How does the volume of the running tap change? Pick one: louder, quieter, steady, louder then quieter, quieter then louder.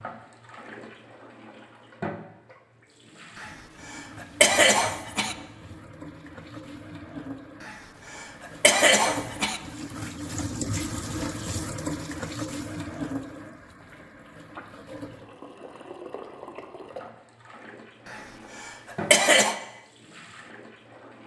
louder then quieter.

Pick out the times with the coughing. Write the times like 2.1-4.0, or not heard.
3.4-5.3, 7.7-9.6, 18.1-19.6.